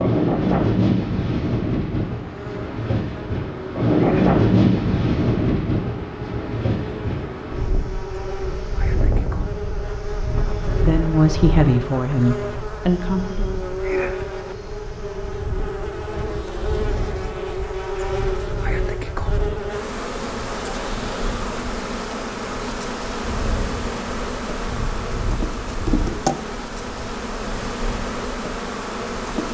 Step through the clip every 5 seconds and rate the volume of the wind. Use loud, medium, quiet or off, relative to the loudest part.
loud, medium, quiet, quiet, quiet, quiet.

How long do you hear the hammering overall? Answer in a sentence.
The hammering can't be heard in this clip.